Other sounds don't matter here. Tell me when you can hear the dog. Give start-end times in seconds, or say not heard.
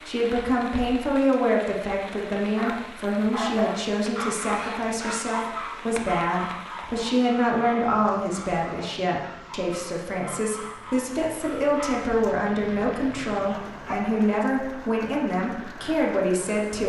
2.5-14.0.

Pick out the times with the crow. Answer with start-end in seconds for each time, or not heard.
not heard.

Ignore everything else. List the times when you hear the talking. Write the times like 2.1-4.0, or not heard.
0.0-16.8.